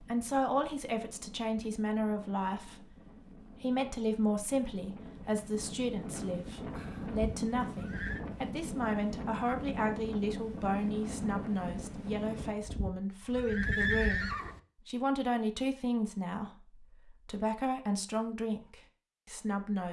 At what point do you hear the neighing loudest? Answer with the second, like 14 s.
14 s.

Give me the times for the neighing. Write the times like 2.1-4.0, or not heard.
7.1-8.2, 12.6-14.6.